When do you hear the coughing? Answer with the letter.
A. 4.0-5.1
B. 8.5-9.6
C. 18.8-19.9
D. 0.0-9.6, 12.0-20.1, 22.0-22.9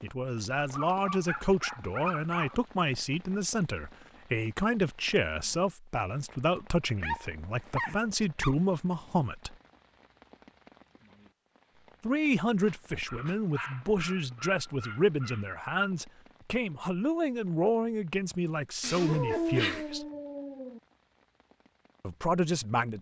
C.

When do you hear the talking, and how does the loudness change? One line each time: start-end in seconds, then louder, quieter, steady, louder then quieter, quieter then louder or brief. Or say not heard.
0.0-9.6 steady
12.0-20.1 steady
22.0-22.9 brief.